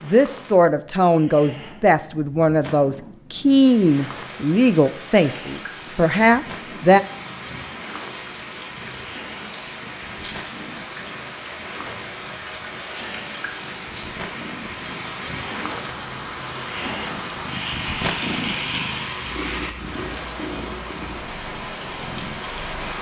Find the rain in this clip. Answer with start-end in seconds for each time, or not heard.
3.4-22.9.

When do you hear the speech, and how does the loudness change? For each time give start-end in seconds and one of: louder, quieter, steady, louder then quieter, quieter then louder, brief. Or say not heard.
0.0-7.0 steady.